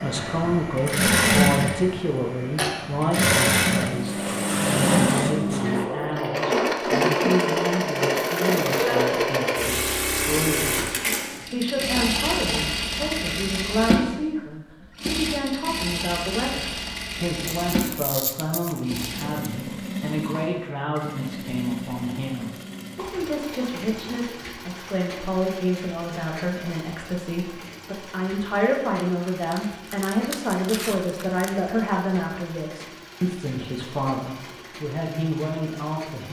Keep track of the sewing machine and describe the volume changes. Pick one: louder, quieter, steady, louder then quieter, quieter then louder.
quieter.